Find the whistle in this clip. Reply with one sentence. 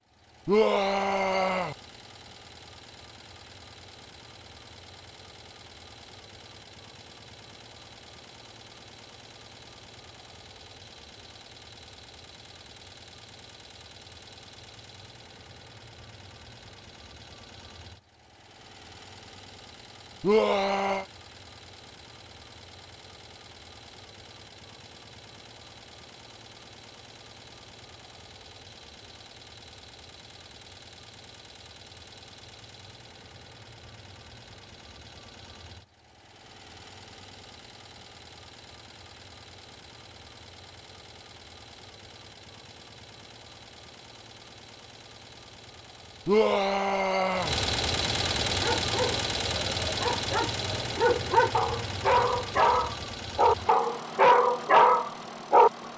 You can't hear the whistle here.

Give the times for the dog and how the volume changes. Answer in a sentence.
The dog can be heard from 48.5 to 55.7 s, getting louder.